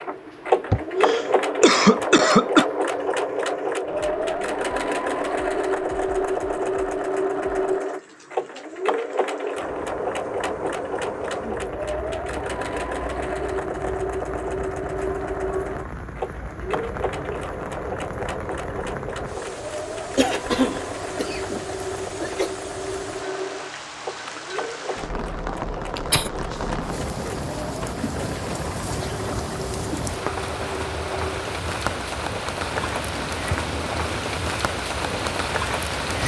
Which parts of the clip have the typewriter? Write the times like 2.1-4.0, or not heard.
not heard.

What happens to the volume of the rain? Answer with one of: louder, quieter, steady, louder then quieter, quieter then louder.
louder.